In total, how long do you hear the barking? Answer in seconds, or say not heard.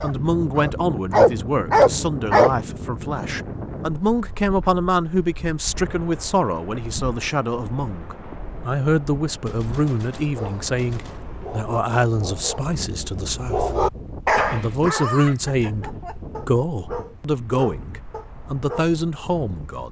11 s.